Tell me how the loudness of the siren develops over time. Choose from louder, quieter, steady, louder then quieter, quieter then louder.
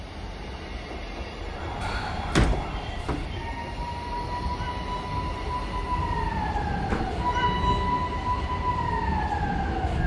louder.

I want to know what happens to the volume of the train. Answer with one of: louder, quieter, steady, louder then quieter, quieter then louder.
steady.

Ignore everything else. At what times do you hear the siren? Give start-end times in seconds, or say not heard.
1.4-10.0.